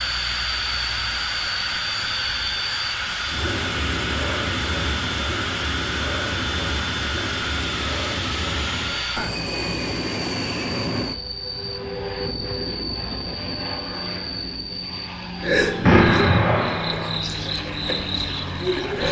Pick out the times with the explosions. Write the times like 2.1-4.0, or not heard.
15.8-17.2.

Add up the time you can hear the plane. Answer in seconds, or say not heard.
19 s.